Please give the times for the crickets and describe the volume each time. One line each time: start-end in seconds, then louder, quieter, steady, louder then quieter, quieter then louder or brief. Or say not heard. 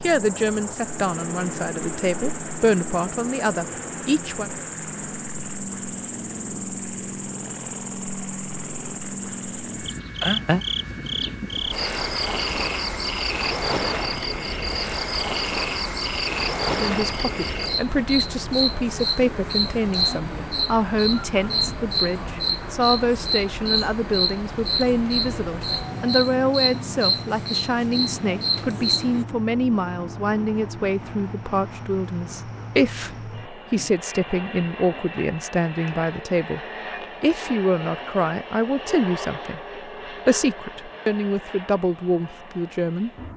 0.0-29.2 louder.